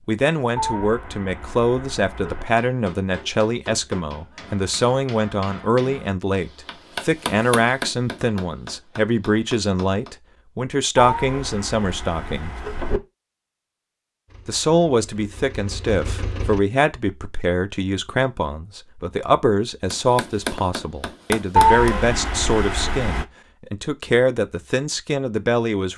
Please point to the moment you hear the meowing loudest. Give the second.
22 s.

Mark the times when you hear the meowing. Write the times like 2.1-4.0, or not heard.
0.6-2.5, 10.9-13.0, 21.6-23.2.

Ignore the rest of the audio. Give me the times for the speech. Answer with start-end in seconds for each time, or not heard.
0.1-12.6, 14.4-25.9.